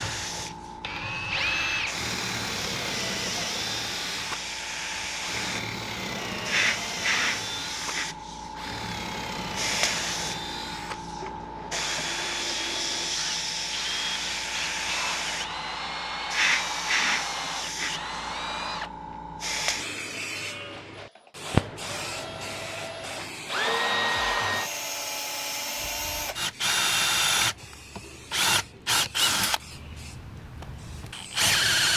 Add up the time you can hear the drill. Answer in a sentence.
You can hear the drill for 31 seconds altogether.